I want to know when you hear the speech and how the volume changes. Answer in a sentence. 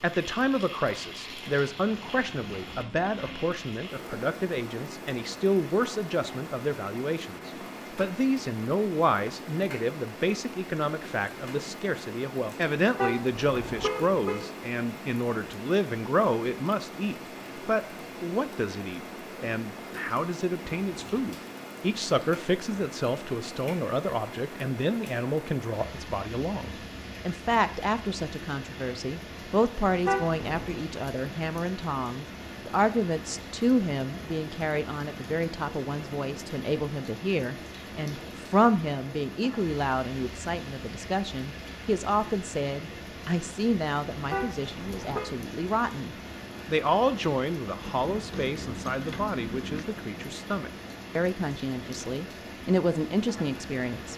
The speech can be heard from 0.0 to 54.1 s, at a steady volume.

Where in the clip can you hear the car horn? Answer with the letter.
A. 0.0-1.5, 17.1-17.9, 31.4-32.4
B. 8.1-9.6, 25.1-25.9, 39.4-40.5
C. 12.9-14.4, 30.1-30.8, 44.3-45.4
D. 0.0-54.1
C.